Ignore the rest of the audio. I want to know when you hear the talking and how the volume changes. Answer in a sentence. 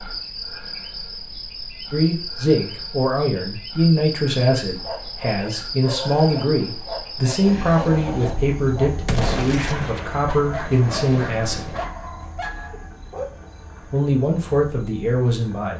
The talking can be heard from 1.9 to 11.7 s, at a steady volume; and briefly from 13.9 to 15.7 s.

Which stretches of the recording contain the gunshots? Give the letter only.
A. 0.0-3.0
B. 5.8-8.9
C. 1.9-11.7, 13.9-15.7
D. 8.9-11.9
D.